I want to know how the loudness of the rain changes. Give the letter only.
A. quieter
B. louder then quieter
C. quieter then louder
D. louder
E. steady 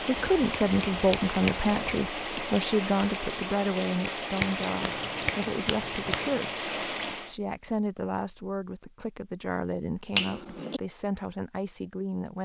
E.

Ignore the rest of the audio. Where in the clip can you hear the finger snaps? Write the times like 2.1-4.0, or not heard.
0.1-2.1, 4.4-6.5, 10.1-10.8.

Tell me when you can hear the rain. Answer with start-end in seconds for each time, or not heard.
0.0-7.3.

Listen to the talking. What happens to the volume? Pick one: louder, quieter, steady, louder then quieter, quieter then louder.
quieter.